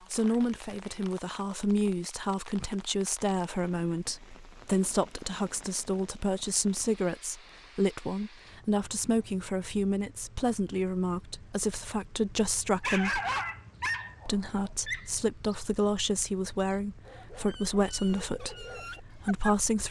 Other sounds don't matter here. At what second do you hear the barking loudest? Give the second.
13 s.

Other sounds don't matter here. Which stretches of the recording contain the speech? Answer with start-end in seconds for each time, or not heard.
0.1-13.2, 14.2-19.8.